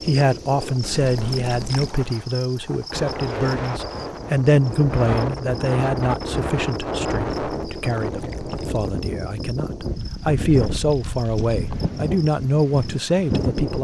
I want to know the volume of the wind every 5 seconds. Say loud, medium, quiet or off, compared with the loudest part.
medium, loud, loud.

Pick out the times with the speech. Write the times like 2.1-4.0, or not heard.
0.0-13.7.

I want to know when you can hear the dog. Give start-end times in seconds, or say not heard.
not heard.